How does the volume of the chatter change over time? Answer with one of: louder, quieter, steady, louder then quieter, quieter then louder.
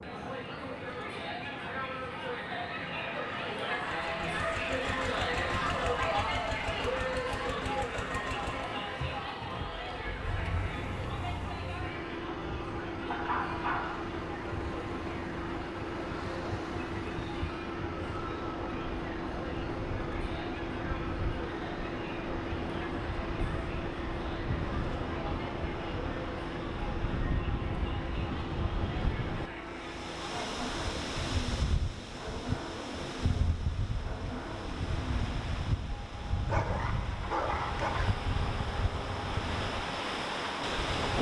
quieter.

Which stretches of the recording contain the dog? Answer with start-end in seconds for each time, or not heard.
13.1-14.1, 36.5-38.1.